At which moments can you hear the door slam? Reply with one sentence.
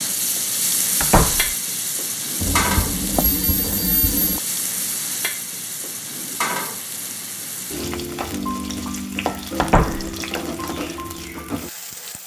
You can hear the door slam from 1.0 to 1.5 s and from 9.6 to 10.1 s.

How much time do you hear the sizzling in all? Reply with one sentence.
The sizzling can be heard for 12 seconds in total.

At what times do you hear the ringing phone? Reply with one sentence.
The ringing phone can be heard from 2.4 to 4.4 s.